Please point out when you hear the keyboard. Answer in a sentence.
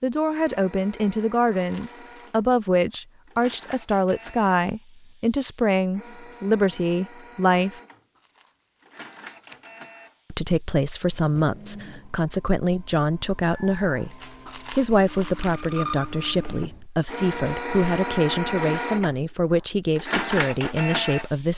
The keyboard can't be heard in this clip.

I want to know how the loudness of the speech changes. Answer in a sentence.
The volume of the speech stays about the same.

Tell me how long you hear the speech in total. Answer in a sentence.
You can hear the speech for 19 seconds altogether.